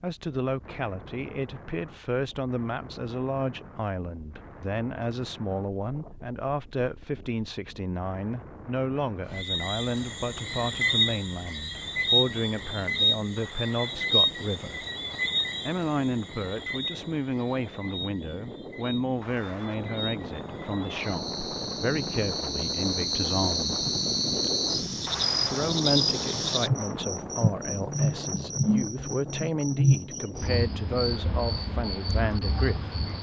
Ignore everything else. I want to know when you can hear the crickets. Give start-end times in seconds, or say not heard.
9.2-33.1.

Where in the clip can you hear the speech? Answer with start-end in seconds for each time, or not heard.
0.0-14.8, 15.7-23.9, 25.5-33.0.